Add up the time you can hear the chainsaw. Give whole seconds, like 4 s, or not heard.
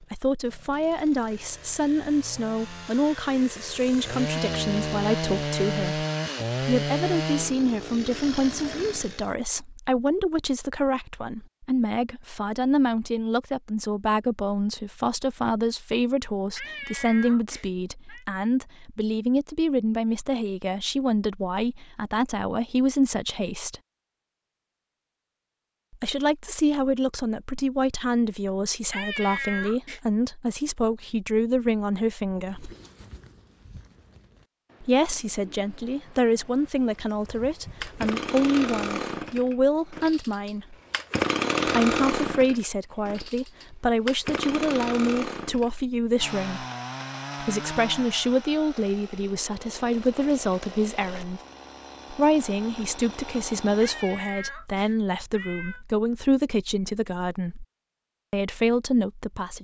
26 s.